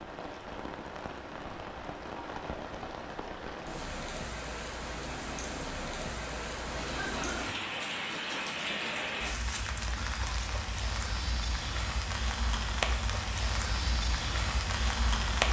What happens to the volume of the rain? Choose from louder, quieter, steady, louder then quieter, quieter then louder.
louder.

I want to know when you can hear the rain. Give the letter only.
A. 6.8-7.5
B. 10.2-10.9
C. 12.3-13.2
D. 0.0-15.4
D.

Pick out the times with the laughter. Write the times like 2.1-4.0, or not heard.
6.8-7.5.